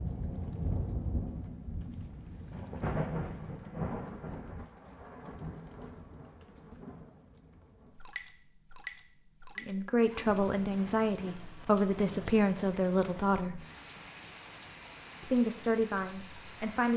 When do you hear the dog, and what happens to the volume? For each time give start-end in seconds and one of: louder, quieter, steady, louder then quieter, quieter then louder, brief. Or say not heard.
not heard.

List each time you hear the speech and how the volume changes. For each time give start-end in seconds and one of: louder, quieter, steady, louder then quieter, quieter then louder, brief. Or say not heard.
9.6-13.7 steady
15.2-16.9 brief.